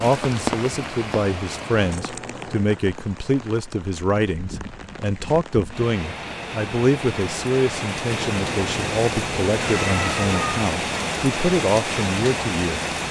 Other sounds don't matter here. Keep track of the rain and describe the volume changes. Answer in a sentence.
The loudness of the rain goes down, then up.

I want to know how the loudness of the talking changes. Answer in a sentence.
The volume of the talking stays about the same.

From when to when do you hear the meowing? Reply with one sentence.
The meowing can be heard from 1.8 to 2.7 s and from 8.2 to 10.7 s.